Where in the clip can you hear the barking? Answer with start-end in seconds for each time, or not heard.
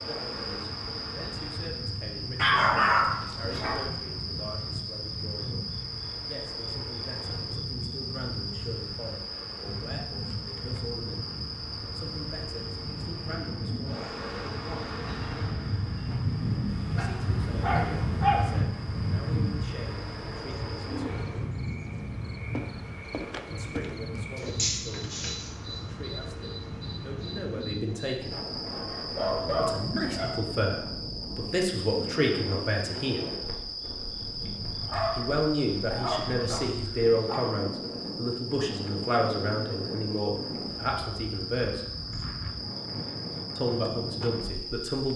2.4-3.9, 16.8-18.4, 28.7-30.4, 34.8-37.4.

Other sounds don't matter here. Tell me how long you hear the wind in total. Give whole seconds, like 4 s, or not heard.
45 s.